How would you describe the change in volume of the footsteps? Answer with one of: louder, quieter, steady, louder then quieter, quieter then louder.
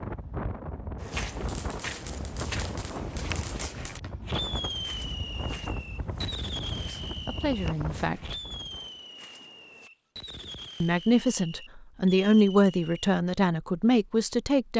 quieter.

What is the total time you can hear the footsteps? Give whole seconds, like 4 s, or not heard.
9 s.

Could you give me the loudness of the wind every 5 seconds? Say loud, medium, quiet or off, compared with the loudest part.
loud, loud, off.